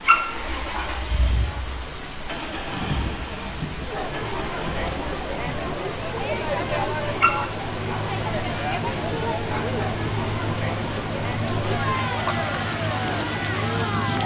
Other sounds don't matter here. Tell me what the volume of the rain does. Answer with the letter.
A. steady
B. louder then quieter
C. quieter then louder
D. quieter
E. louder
A.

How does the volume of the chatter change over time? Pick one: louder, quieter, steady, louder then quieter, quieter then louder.
louder.